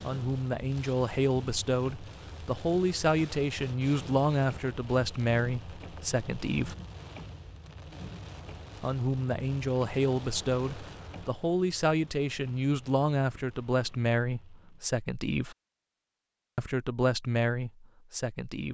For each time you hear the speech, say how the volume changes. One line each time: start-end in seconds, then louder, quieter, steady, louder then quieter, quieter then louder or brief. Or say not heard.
0.0-6.8 steady
8.8-15.6 steady
16.6-18.6 brief.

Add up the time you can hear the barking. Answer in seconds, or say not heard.
not heard.